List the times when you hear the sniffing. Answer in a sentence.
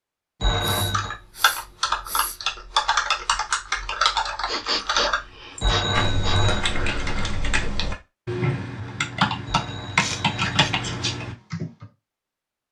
The sniffing can be heard from 0.6 to 2.4 s, from 4.5 to 6.5 s and from 9.9 to 10.8 s.